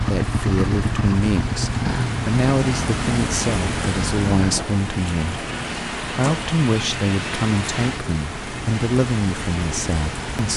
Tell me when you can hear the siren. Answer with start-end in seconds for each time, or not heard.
not heard.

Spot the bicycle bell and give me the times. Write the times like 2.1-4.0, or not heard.
not heard.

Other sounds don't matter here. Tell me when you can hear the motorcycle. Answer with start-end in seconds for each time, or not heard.
0.0-4.6.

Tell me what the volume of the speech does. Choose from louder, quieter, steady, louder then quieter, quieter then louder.
steady.